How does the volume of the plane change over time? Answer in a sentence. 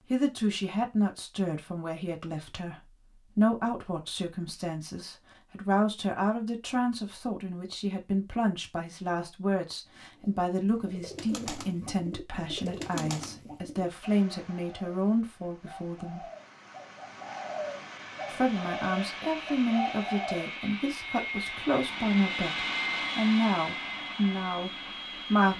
The volume of the plane goes up, then down.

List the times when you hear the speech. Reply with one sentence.
You can hear the speech from 0.1 to 16.2 s and from 18.3 to 25.5 s.